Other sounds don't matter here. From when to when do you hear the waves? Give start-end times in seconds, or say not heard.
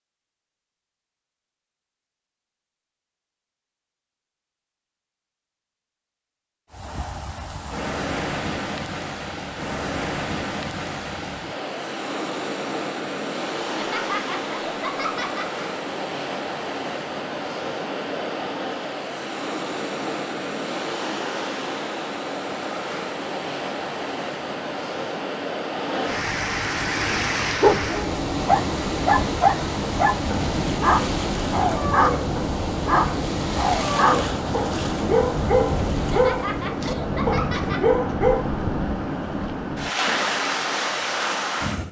6.7-41.8.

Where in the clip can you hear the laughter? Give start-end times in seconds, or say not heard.
13.8-15.5, 36.1-38.0.